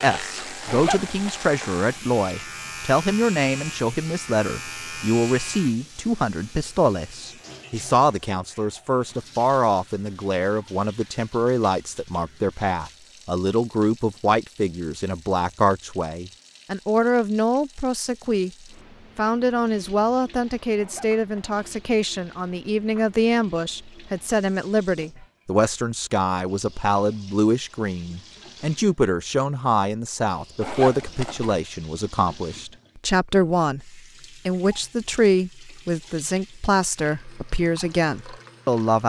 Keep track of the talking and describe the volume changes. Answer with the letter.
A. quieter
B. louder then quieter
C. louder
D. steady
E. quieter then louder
D.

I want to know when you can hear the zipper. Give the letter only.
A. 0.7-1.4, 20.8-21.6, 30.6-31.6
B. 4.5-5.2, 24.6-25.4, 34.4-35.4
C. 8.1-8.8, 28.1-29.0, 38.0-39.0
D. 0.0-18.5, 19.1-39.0
A.